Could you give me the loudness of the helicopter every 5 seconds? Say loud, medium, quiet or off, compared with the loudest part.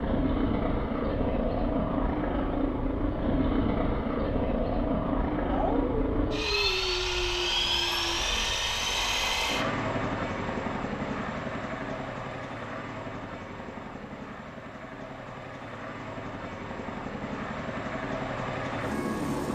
loud, loud, medium, medium.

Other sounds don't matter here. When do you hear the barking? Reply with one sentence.
The barking can be heard from 5.5 to 8.2 s.